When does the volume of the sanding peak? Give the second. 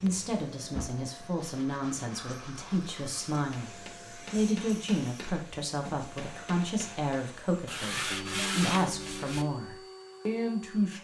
9 s.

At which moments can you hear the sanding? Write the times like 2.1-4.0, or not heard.
0.7-3.0, 7.7-9.4.